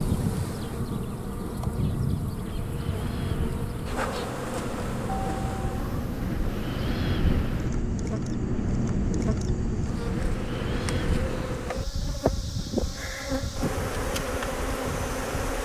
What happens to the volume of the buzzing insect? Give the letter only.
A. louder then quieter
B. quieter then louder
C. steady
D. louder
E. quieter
B.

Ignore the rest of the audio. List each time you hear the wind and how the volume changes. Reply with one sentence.
You can hear the wind from 0.0 to 15.5 s, getting louder then quieter.